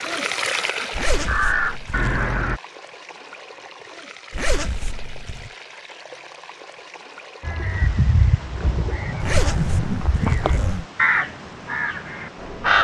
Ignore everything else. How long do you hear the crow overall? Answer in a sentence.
The crow can be heard for 8 seconds in total.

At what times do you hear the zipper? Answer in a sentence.
You can hear the zipper from 0.9 to 2.2 s, from 4.3 to 5.5 s and from 9.2 to 10.8 s.